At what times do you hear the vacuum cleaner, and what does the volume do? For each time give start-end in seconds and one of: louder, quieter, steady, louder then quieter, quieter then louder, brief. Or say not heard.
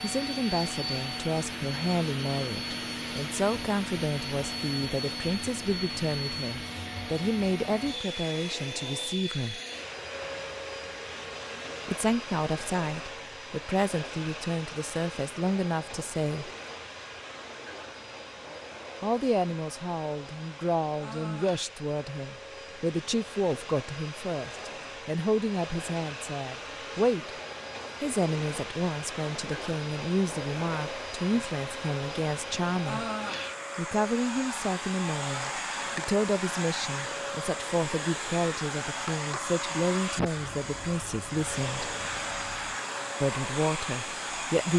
0.0-44.7 quieter then louder.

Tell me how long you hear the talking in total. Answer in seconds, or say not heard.
37 s.